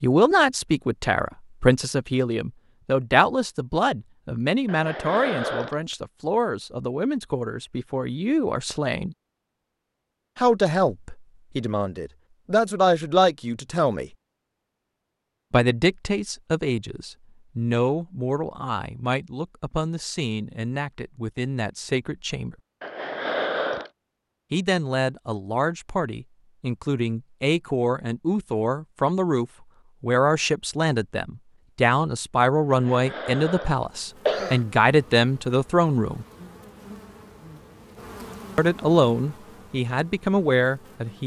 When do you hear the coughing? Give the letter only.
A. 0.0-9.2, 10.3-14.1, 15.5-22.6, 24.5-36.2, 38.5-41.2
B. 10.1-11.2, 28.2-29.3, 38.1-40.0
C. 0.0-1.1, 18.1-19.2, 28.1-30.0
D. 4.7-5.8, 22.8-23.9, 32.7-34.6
D.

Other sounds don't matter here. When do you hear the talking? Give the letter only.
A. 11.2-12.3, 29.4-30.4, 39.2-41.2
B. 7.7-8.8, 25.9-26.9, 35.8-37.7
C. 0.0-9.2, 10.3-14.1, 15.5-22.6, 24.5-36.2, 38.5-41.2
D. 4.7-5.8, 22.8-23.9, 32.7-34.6
C.